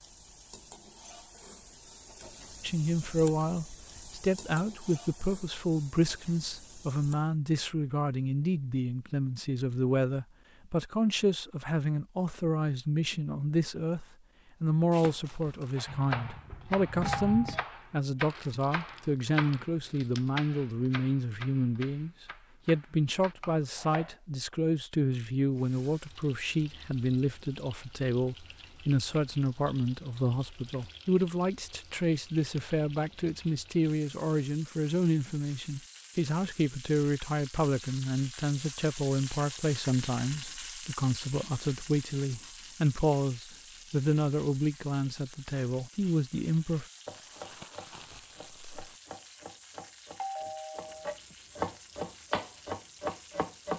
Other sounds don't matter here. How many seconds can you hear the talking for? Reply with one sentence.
The talking can be heard for 44 seconds in total.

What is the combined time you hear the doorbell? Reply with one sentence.
You can hear the doorbell for 3 seconds altogether.